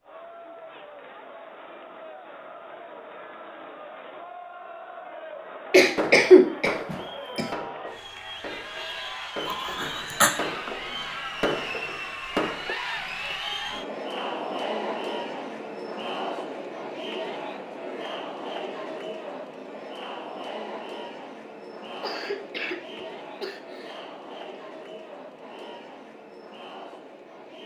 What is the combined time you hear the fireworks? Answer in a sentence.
You can hear the fireworks for 7 seconds altogether.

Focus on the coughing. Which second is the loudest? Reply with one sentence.
The loudest moment of the coughing is at 6 seconds.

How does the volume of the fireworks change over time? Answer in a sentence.
The volume of the fireworks goes down, then up.